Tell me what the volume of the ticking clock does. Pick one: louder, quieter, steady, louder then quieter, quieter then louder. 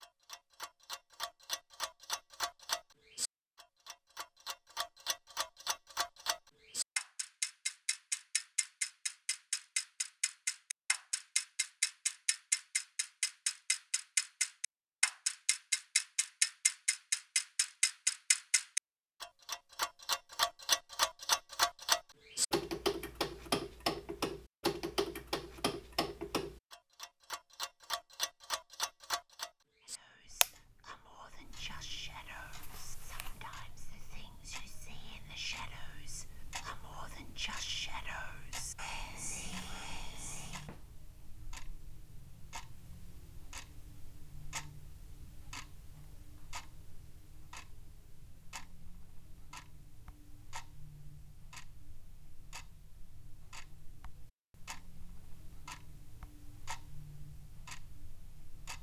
louder then quieter.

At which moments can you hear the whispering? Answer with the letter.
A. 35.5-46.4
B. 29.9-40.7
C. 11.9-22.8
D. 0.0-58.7
B.